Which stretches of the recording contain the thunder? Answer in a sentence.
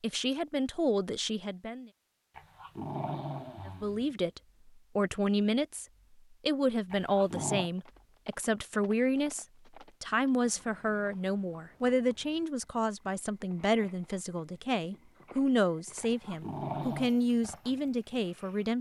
The thunder can't be heard in this clip.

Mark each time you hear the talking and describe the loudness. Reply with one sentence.
The talking can be heard briefly from 0.0 to 1.9 s; and from 3.6 to 18.7 s, at a steady volume.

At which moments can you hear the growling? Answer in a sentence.
The growling can be heard from 2.4 to 4.2 s, from 6.9 to 7.7 s and from 16.0 to 17.2 s.